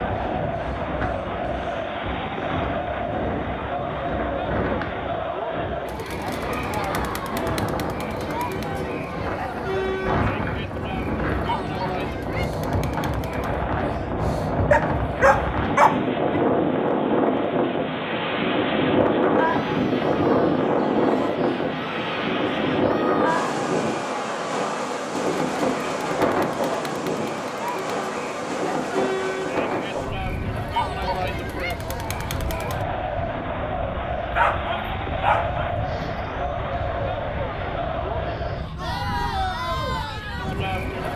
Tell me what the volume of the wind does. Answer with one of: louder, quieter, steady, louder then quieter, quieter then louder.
louder then quieter.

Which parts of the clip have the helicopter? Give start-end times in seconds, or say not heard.
not heard.